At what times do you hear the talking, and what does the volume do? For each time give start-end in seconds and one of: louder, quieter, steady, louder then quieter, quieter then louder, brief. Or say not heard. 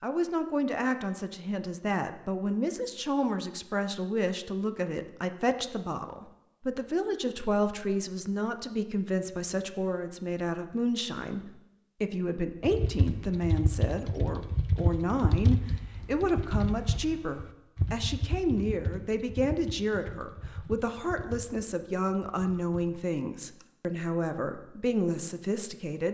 0.0-26.0 steady.